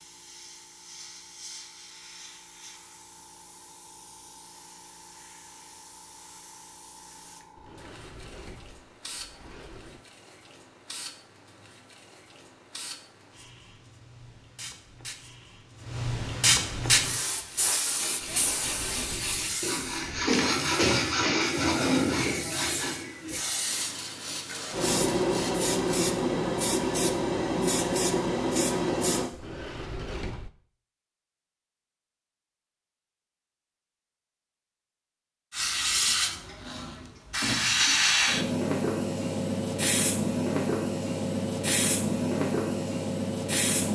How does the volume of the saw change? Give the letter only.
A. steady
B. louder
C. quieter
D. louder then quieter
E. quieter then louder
D.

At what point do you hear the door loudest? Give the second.
30 s.